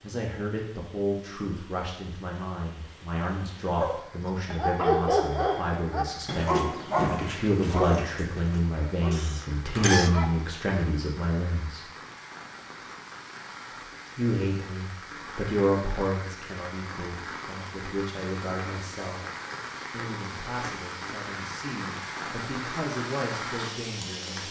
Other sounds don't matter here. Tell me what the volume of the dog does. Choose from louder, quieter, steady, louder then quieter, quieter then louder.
quieter.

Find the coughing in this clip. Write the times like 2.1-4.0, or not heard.
9.1-10.2.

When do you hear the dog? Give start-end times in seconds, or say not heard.
3.8-10.3.